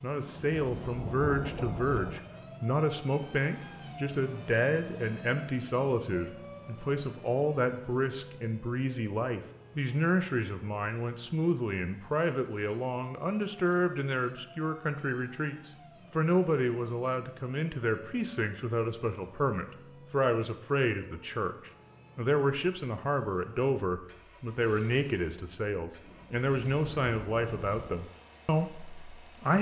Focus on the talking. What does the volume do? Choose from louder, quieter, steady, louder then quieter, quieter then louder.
steady.